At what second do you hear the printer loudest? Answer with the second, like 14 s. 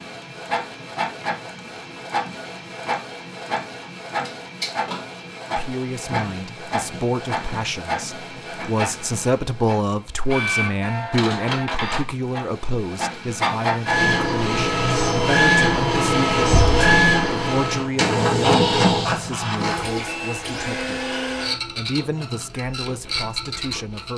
17 s.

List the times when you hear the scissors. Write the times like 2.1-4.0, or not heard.
18.1-19.9.